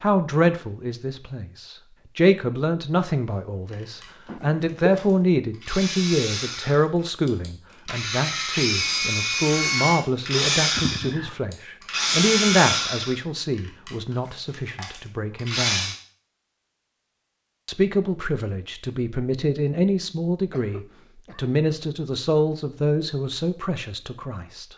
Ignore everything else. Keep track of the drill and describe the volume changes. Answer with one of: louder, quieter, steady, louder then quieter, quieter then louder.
louder then quieter.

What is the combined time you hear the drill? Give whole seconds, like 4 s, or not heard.
12 s.